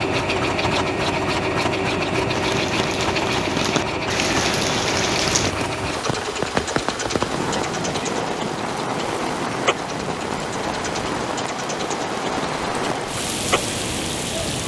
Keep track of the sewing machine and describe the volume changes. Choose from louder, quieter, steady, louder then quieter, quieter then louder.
quieter.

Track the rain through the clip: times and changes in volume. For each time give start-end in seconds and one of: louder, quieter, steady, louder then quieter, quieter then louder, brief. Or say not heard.
2.3-14.6 steady.